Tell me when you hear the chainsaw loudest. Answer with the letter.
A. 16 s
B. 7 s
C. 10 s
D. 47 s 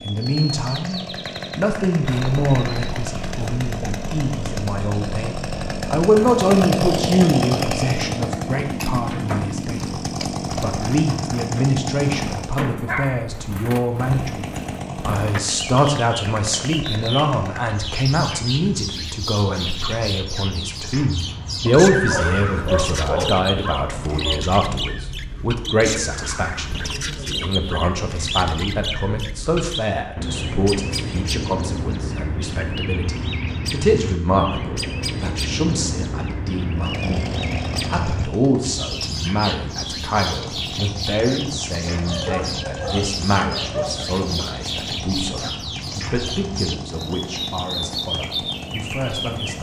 B.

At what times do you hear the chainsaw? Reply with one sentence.
The chainsaw can be heard from 0.0 to 12.7 s, from 13.8 to 17.8 s and from 36.7 to 49.5 s.